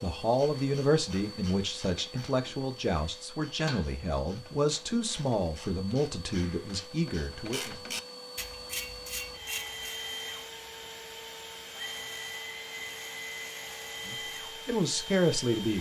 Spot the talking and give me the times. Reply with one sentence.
You can hear the talking from 0.0 to 7.8 s and from 14.1 to 15.7 s.